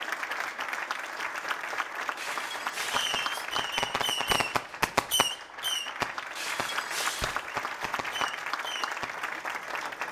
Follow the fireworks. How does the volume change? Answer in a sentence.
The loudness of the fireworks goes down.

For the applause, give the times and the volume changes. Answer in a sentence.
The applause can be heard from 0.0 to 10.0 s, getting quieter then louder.